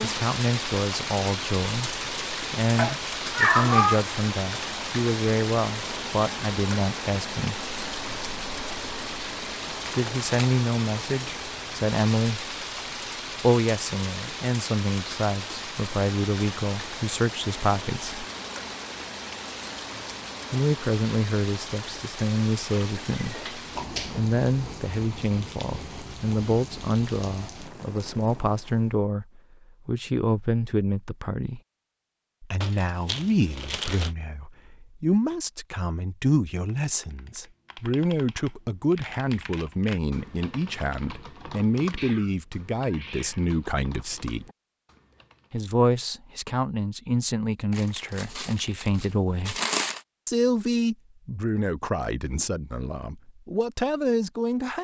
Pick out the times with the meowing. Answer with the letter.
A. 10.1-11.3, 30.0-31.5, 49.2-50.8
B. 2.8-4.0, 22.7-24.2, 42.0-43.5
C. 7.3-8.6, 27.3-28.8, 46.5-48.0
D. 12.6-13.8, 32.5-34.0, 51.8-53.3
B.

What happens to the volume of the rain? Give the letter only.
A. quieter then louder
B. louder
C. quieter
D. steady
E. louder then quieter
C.